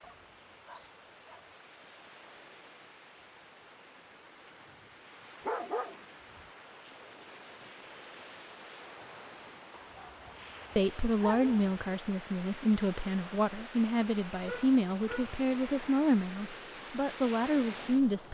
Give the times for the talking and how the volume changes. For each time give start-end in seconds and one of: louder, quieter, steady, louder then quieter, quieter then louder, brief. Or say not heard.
10.8-18.2 steady.